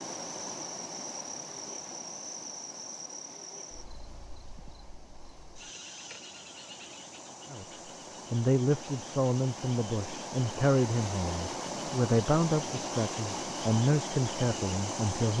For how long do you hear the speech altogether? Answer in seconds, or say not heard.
8 s.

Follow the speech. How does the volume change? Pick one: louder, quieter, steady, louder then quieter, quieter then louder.
steady.